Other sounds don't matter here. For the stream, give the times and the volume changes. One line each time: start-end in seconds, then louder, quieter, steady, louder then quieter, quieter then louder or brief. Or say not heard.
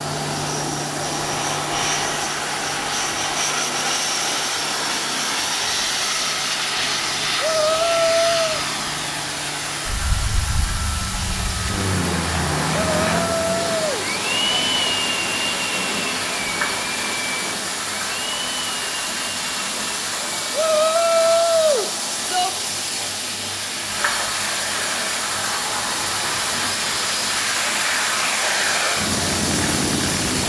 0.0-30.4 louder.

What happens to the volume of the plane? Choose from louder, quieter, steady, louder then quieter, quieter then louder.
quieter then louder.